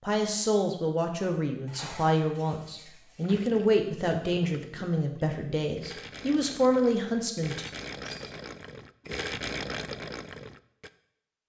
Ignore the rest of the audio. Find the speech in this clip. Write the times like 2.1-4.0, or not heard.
0.0-7.7.